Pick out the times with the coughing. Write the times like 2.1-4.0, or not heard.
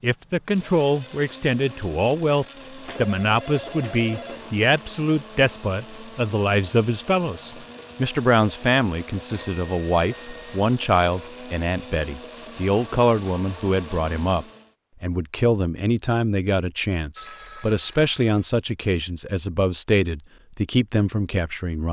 not heard.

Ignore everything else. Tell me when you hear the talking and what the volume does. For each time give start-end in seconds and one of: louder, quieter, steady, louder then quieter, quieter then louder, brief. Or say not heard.
0.0-21.8 steady.